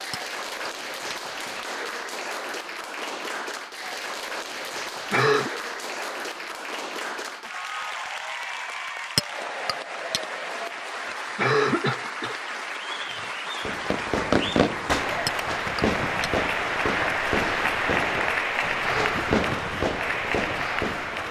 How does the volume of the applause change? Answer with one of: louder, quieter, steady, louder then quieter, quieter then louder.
louder.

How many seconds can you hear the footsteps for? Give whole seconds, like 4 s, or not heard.
not heard.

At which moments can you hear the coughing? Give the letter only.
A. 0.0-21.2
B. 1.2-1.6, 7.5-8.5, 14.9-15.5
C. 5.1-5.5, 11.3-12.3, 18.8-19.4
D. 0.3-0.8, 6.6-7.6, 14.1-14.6
C.